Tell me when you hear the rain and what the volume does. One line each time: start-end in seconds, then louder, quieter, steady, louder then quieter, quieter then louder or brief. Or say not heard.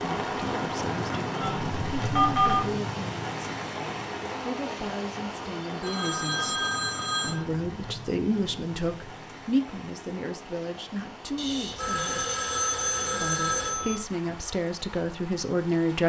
0.0-16.0 quieter.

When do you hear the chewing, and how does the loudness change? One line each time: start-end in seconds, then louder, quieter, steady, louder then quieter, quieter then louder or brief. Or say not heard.
not heard.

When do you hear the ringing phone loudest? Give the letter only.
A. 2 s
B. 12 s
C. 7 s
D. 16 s
A.